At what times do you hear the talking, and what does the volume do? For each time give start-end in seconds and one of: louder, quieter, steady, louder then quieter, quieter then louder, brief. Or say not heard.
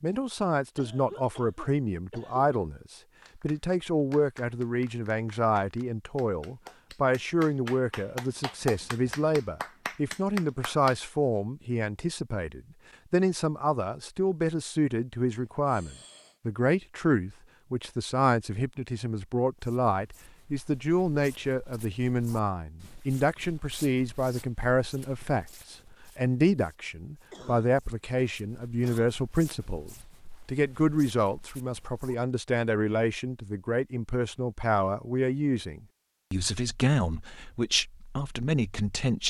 0.0-39.2 steady.